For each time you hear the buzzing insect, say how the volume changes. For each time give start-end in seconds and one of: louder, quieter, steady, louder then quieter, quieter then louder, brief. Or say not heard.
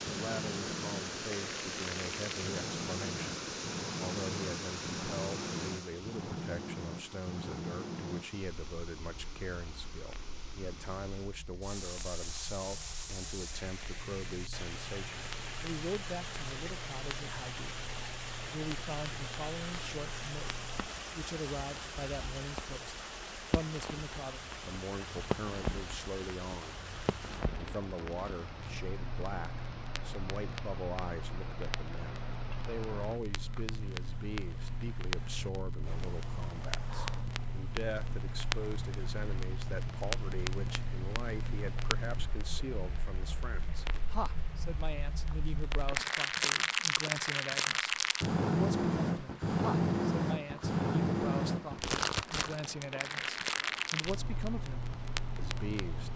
not heard.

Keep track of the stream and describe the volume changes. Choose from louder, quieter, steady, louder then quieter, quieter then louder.
quieter.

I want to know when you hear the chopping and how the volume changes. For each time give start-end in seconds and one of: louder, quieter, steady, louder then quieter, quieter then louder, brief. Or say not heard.
not heard.